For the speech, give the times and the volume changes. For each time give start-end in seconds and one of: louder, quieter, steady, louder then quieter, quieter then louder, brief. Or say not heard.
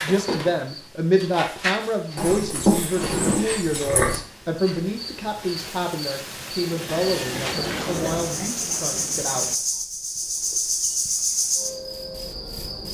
0.0-9.6 quieter.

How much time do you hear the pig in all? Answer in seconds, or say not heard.
4 s.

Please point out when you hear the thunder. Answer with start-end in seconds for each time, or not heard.
5.5-9.6.